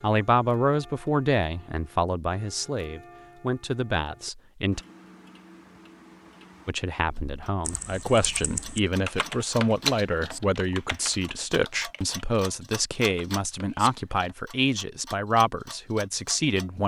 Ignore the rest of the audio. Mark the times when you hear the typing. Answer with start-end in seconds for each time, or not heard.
7.0-14.3.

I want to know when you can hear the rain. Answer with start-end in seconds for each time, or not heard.
not heard.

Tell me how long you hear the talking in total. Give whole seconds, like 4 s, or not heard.
15 s.